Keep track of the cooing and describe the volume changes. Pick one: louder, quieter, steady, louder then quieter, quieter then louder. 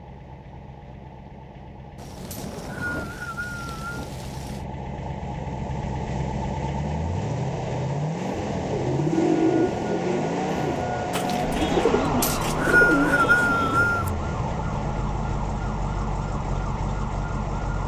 quieter then louder.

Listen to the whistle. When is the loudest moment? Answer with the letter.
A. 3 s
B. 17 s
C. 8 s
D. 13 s
D.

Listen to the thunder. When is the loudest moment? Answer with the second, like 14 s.
3 s.